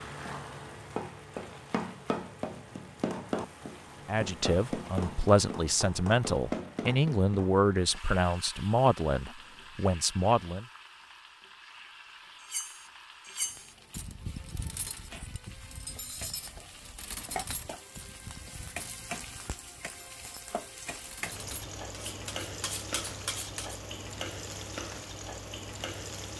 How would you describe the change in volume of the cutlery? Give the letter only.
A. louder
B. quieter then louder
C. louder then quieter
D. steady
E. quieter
B.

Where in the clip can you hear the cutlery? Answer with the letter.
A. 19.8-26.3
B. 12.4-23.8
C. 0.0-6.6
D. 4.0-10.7
B.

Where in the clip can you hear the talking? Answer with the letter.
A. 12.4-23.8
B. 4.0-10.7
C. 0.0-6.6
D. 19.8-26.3
B.